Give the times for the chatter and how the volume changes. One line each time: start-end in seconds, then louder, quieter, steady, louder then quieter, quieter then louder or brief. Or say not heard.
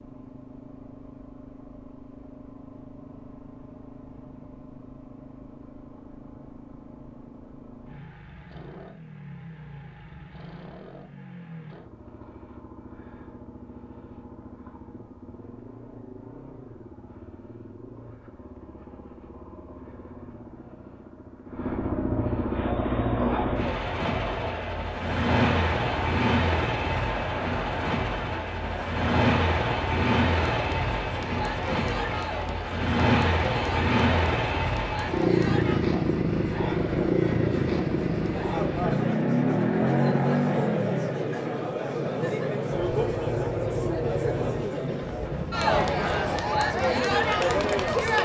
22.5-48.2 louder.